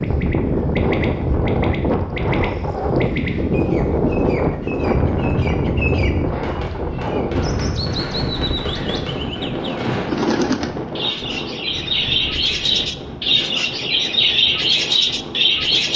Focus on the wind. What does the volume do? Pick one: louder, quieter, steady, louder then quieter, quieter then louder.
quieter.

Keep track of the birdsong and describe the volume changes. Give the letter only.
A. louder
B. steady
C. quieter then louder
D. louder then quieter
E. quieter
A.